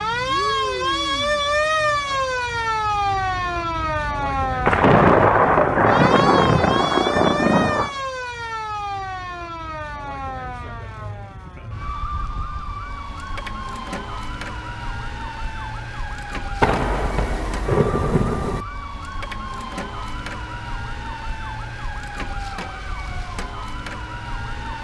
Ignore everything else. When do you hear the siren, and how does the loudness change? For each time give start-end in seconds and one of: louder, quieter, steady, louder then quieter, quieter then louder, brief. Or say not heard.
0.0-24.8 quieter.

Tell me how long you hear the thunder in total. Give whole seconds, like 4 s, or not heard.
5 s.